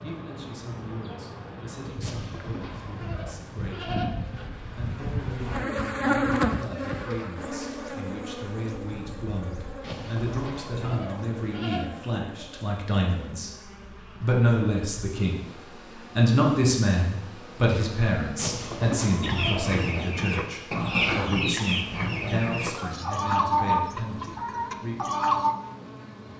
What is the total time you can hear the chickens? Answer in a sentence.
You can hear the chickens for 6 seconds altogether.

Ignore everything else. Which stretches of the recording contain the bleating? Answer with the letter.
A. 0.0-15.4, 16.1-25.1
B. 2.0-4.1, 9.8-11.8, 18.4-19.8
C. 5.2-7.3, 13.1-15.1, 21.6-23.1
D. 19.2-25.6
B.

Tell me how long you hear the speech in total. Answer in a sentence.
The speech can be heard for 24 seconds in total.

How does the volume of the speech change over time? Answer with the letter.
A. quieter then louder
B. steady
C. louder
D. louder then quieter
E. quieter
D.